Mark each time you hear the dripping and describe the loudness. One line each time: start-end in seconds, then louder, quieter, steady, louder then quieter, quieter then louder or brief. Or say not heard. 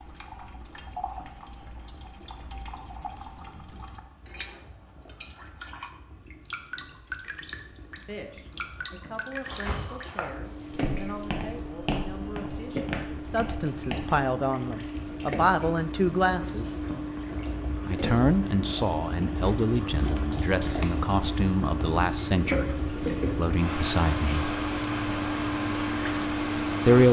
0.0-27.0 louder.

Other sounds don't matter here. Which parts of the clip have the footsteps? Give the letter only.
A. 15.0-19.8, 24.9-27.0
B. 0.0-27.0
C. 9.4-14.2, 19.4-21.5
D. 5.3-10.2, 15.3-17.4
C.